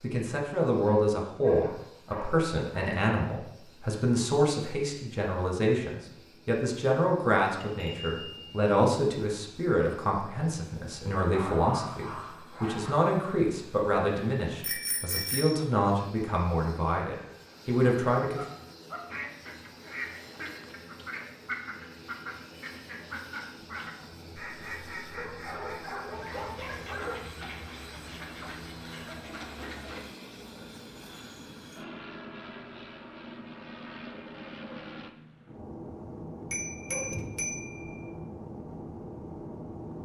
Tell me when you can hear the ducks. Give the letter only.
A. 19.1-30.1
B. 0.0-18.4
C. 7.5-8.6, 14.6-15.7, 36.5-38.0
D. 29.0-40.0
A.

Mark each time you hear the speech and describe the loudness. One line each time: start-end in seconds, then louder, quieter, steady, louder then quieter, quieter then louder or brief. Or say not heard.
0.0-18.4 steady.